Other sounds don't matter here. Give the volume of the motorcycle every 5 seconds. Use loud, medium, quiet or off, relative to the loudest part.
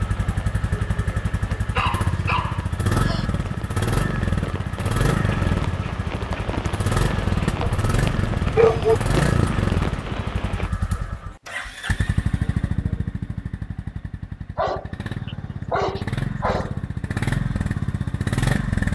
loud, loud, medium, loud.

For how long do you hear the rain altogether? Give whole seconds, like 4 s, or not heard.
11 s.